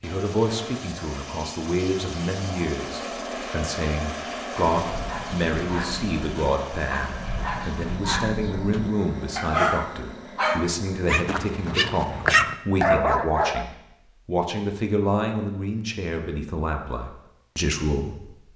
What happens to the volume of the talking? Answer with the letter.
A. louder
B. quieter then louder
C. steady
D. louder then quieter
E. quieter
C.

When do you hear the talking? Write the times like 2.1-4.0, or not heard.
0.0-18.5.